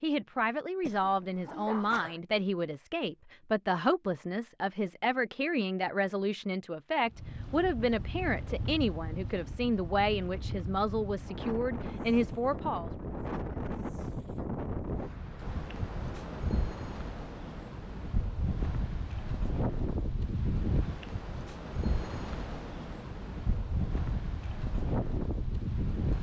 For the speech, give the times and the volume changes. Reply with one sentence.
You can hear the speech from 0.0 to 12.9 s, at a steady volume.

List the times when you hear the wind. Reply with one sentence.
The wind can be heard from 7.0 to 26.1 s.